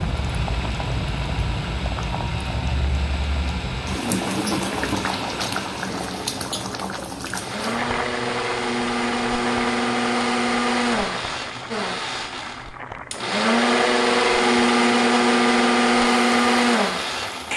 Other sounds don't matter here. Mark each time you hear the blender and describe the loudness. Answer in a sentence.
You can hear the blender from 0.0 to 17.5 s, getting louder.